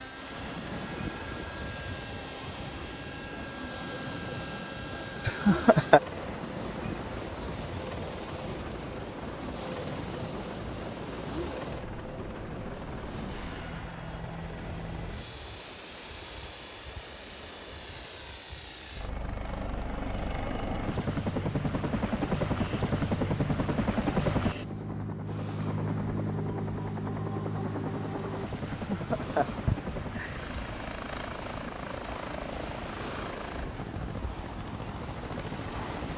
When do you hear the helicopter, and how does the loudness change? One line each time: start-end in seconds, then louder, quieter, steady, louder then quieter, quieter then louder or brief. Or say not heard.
0.0-36.1 louder then quieter.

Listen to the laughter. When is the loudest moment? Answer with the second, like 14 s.
6 s.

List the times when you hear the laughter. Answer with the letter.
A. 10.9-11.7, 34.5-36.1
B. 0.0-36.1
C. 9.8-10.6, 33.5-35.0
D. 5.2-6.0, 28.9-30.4
D.